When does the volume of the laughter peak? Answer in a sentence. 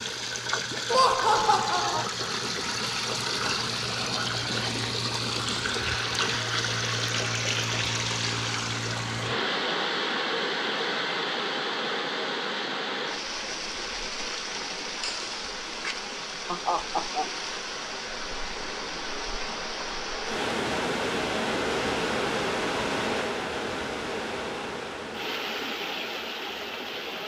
The loudest moment of the laughter is at 1 second.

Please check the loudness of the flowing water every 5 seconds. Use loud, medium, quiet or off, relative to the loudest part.
loud, loud, loud, medium, loud, medium.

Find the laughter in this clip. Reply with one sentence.
The laughter can be heard from 0.9 to 2.0 s and from 15.0 to 17.2 s.